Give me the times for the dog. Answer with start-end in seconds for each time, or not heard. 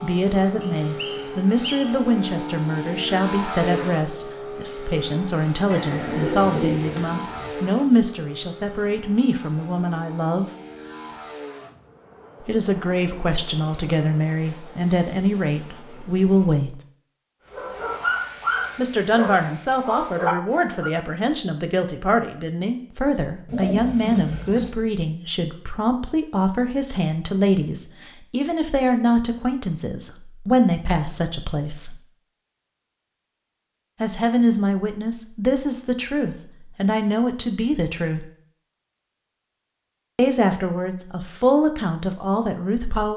17.5-20.9.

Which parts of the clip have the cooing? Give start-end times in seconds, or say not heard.
5.7-7.5, 23.4-24.7.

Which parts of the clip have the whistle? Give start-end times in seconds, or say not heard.
0.6-2.0.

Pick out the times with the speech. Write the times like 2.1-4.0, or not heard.
0.0-10.5, 12.4-16.8, 18.8-32.0, 34.0-38.2, 40.1-43.1.